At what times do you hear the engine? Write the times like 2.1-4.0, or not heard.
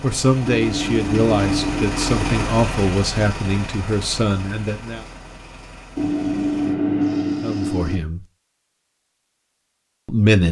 0.0-6.8.